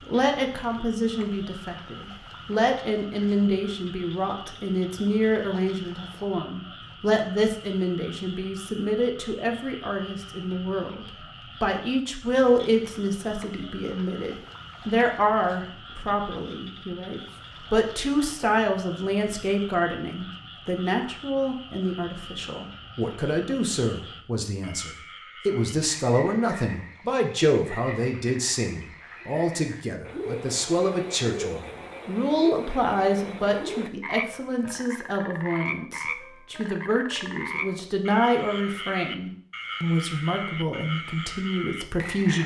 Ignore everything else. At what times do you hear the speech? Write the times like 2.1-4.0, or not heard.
0.1-42.4.